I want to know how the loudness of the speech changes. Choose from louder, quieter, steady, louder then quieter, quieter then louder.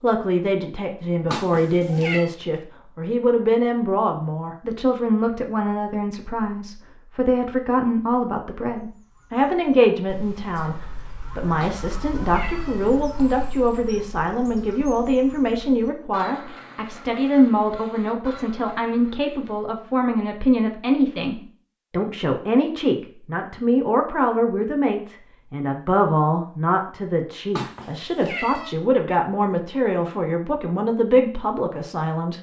steady.